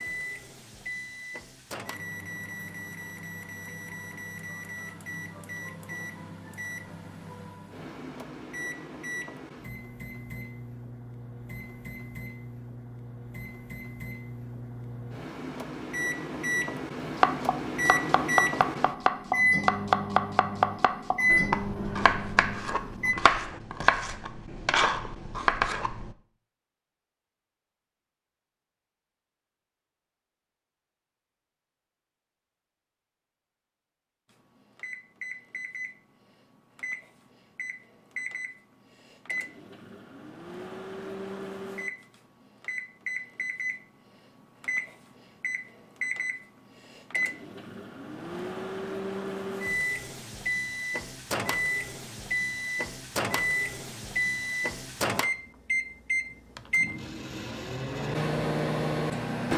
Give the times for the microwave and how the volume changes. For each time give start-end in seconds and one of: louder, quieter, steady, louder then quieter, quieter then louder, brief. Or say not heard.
0.0-23.1 louder
34.3-59.5 louder.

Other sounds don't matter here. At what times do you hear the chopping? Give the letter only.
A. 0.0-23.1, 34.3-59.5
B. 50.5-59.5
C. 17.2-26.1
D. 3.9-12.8
C.